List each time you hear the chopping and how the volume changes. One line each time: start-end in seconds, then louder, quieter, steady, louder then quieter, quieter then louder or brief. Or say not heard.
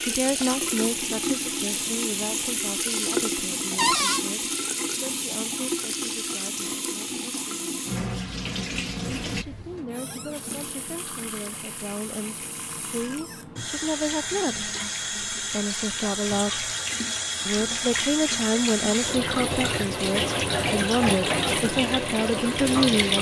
not heard.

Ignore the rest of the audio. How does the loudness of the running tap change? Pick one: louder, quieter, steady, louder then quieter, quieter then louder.
quieter then louder.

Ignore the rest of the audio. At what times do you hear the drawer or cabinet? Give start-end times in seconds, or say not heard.
3.8-4.2.